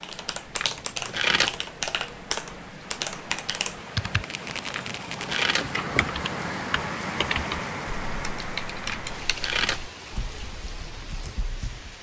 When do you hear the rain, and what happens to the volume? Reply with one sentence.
The rain can be heard from 0.0 to 11.9 s, getting louder then quieter.